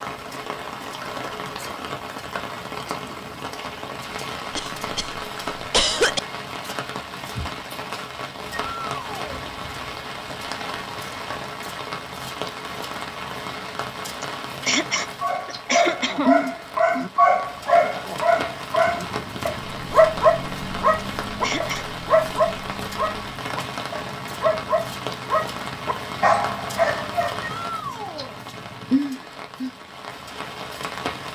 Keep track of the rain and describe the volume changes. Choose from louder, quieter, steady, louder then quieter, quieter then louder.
steady.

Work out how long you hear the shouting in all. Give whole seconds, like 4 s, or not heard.
2 s.